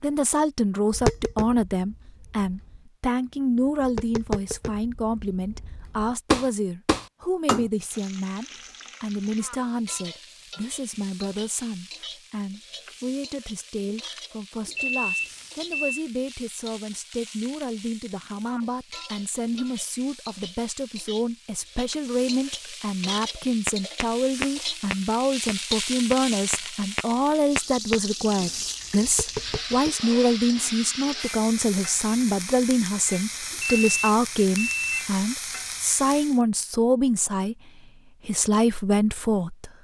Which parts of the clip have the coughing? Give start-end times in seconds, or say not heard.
not heard.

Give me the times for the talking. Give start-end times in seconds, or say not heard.
0.0-39.7.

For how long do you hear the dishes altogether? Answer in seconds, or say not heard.
not heard.